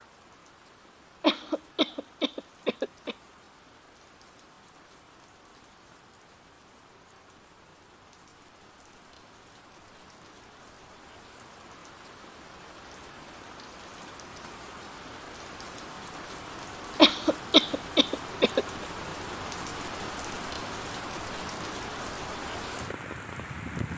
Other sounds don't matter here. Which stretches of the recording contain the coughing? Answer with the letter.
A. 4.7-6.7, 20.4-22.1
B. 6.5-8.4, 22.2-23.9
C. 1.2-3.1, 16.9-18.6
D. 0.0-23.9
C.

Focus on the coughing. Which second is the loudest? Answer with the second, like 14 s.
17 s.